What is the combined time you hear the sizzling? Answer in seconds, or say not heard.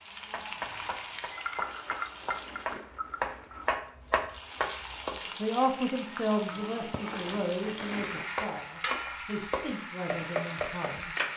10 s.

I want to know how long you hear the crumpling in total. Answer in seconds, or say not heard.
3 s.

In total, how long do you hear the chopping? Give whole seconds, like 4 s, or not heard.
8 s.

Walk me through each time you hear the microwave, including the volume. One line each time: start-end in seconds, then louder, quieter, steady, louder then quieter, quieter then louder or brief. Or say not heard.
not heard.